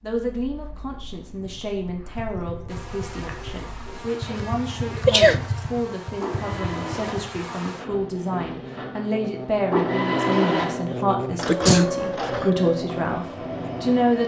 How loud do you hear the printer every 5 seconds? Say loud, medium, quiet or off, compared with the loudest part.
quiet, medium, loud.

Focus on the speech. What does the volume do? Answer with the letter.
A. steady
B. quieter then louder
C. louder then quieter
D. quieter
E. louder
E.